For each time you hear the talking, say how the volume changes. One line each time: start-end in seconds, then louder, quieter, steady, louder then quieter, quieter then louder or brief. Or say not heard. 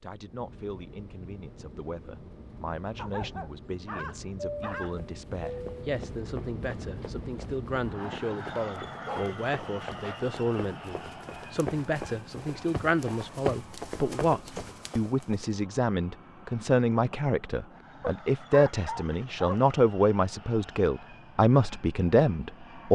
0.0-22.8 louder.